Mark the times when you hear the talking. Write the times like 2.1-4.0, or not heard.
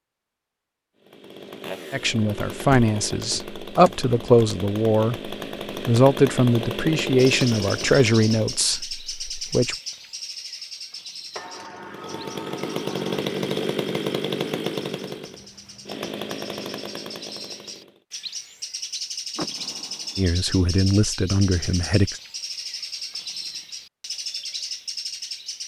1.9-9.8, 20.1-22.2.